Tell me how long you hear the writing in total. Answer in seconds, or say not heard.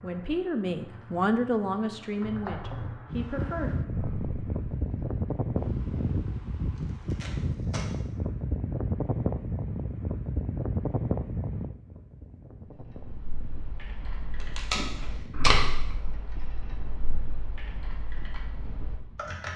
not heard.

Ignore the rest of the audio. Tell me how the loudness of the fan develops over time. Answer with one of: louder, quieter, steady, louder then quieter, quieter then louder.
quieter.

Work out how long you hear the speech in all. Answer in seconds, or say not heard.
4 s.